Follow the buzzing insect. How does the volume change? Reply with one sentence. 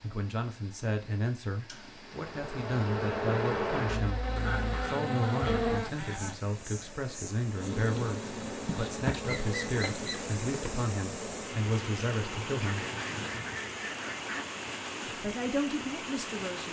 The loudness of the buzzing insect goes down.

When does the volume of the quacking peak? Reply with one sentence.
The volume of the quacking peaks at 9 seconds.